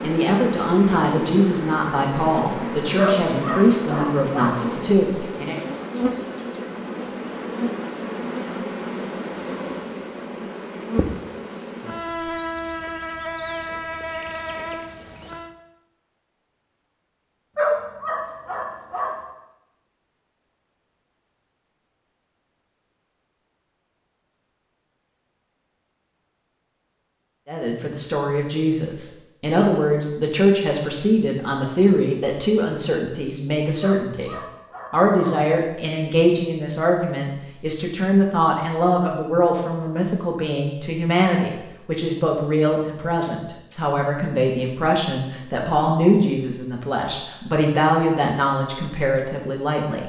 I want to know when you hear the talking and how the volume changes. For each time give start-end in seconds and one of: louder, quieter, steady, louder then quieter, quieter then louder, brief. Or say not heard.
0.0-5.6 steady
27.4-50.0 steady.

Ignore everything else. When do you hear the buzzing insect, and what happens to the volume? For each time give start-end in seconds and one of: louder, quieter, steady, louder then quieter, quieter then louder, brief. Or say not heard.
0.0-15.6 steady.